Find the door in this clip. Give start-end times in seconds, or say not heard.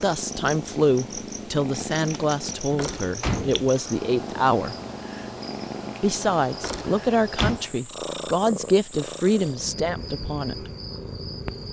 2.7-3.6, 6.8-7.6.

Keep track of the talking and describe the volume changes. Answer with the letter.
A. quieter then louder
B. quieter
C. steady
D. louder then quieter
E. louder
C.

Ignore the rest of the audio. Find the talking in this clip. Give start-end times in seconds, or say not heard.
0.0-4.8, 6.0-10.7.